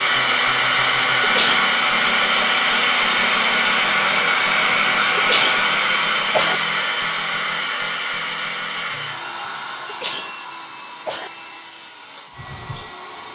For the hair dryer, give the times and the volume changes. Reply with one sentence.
The hair dryer can be heard from 0.0 to 13.3 s, getting quieter.